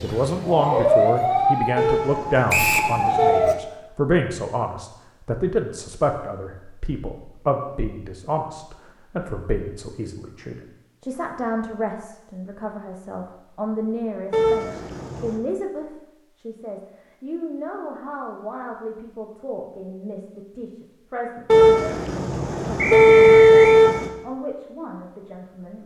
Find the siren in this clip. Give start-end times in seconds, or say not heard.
0.0-3.5.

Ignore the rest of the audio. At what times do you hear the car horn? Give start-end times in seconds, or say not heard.
1.8-3.5, 14.3-15.4, 21.4-24.1.